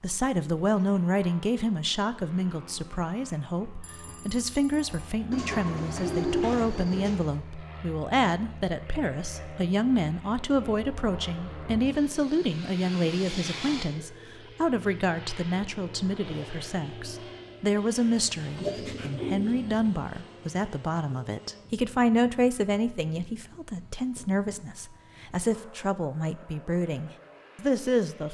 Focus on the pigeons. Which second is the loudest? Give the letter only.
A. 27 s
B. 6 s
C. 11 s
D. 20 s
B.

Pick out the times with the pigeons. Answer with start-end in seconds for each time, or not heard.
5.3-7.3, 18.6-20.1.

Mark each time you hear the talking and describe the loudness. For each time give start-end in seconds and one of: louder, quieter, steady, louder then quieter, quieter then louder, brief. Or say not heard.
0.0-28.2 steady.